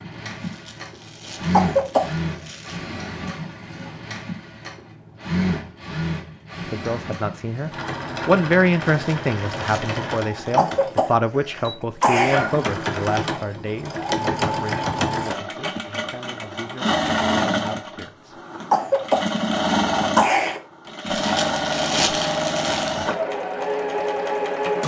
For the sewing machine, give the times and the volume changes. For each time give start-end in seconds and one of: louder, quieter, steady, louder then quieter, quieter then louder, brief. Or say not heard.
0.0-24.8 louder.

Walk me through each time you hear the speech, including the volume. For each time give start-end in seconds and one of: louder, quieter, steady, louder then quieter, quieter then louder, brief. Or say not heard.
6.7-18.4 quieter.